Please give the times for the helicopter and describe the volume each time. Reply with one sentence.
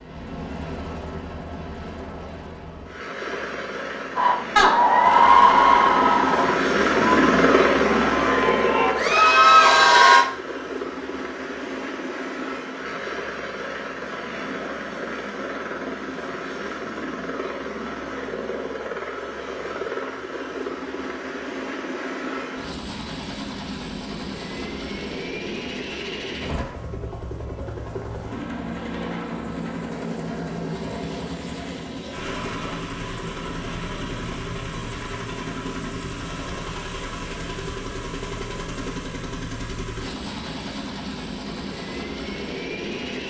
You can hear the helicopter from 0.0 to 43.2 s, getting quieter.